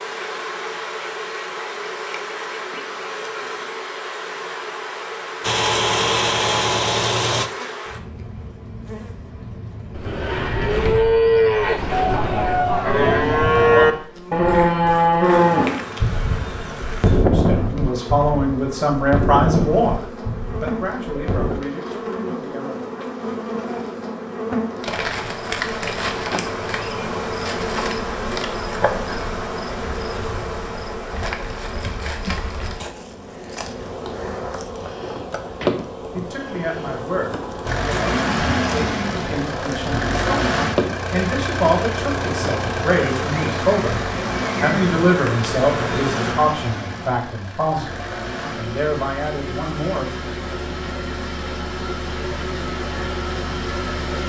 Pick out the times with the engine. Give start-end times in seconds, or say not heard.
5.4-7.5, 37.6-54.2.